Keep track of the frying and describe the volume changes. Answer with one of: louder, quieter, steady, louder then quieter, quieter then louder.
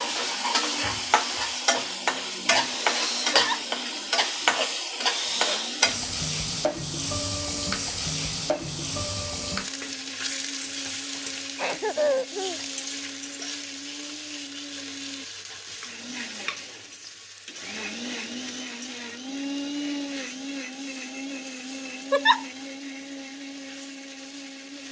quieter.